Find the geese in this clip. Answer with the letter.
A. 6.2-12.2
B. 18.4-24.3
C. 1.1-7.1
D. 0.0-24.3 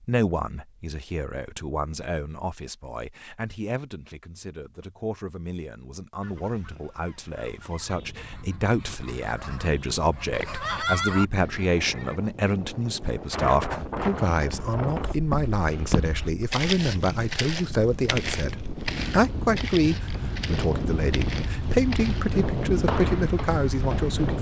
A.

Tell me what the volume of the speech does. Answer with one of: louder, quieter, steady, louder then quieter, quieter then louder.
louder.